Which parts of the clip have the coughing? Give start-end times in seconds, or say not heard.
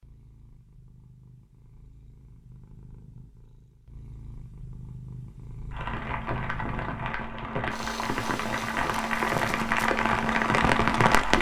not heard.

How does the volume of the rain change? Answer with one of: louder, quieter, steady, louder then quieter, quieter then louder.
louder.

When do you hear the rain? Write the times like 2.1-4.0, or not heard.
5.7-11.3.